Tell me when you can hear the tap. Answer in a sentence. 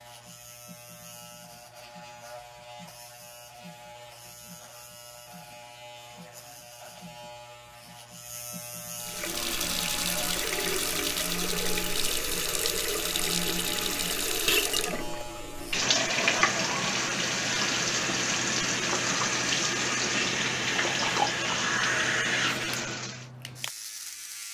You can hear the tap from 9.0 to 23.2 s.